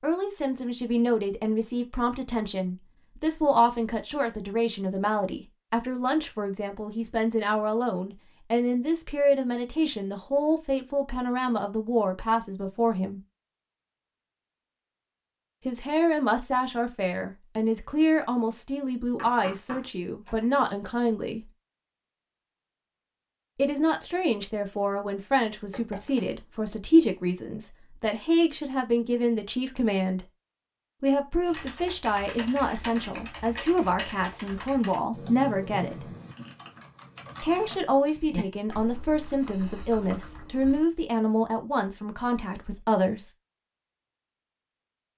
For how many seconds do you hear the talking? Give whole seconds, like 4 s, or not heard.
37 s.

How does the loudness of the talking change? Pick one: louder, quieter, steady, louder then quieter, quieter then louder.
steady.